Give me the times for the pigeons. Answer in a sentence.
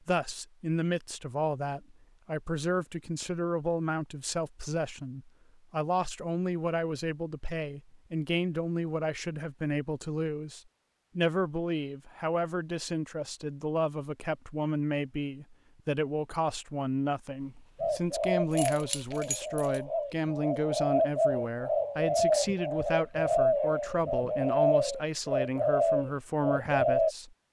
The pigeons can be heard from 17.8 to 27.1 s.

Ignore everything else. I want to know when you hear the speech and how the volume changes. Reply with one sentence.
The speech can be heard from 0.1 to 27.4 s, at a steady volume.